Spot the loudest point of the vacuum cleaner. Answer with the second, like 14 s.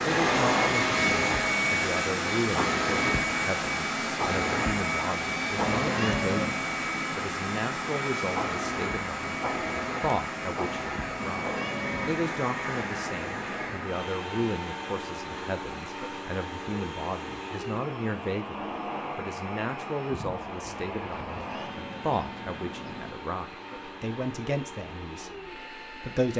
1 s.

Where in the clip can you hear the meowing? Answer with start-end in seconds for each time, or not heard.
5.5-6.6, 11.2-12.2, 21.1-23.1.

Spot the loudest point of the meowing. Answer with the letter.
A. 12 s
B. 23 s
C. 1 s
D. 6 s
D.